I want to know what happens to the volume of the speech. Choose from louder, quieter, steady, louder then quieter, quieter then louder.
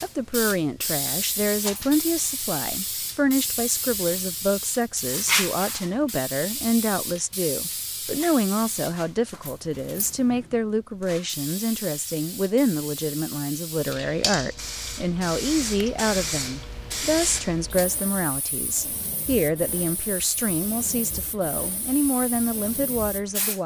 steady.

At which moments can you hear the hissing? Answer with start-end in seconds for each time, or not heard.
0.0-23.6.